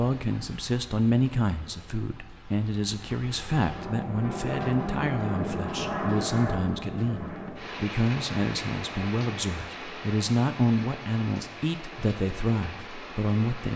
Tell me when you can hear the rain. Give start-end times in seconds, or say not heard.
0.0-13.7.